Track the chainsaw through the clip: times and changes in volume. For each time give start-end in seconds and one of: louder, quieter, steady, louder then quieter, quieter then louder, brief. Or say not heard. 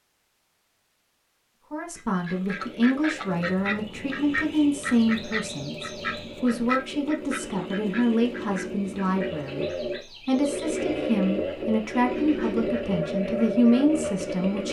2.4-14.6 louder.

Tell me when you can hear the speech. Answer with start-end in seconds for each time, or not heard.
1.7-9.7, 10.2-14.6.